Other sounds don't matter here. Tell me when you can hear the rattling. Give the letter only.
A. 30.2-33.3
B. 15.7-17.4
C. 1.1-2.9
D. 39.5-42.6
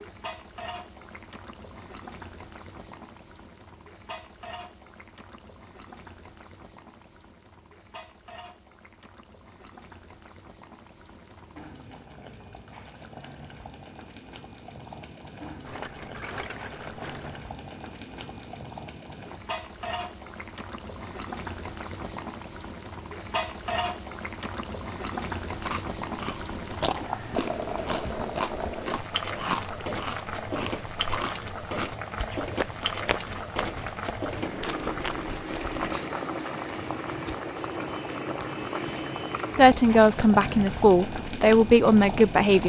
B.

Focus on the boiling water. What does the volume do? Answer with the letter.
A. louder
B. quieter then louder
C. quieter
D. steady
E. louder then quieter
A.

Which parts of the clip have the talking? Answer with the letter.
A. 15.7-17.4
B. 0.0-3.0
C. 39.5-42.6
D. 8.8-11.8
C.